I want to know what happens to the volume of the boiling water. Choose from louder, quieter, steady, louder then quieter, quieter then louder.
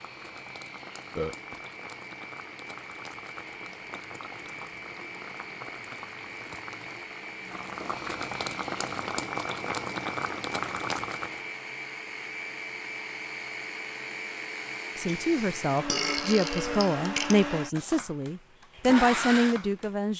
louder.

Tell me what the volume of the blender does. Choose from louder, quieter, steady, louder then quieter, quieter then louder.
louder.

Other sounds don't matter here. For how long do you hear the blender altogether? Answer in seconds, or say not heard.
20 s.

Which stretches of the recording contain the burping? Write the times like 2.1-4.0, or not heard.
1.1-1.6, 15.1-17.6.